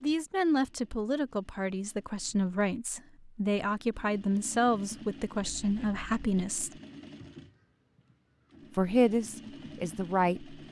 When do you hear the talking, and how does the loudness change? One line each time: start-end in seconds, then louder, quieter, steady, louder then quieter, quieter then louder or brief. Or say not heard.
0.0-6.7 steady
8.8-10.6 brief.